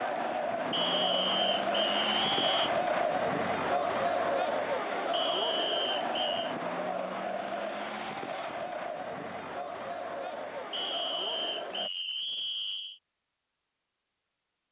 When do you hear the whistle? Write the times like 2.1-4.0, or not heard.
0.7-2.7, 5.1-6.5, 10.7-13.0.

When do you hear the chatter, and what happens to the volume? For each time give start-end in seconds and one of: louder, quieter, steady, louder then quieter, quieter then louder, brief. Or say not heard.
0.0-11.9 quieter.